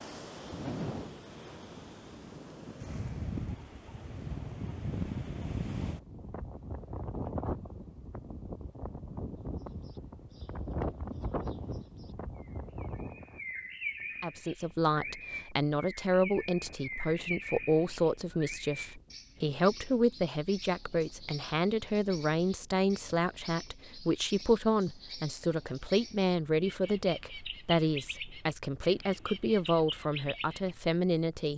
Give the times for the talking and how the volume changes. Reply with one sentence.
You can hear the talking from 14.2 to 31.5 s, at a steady volume.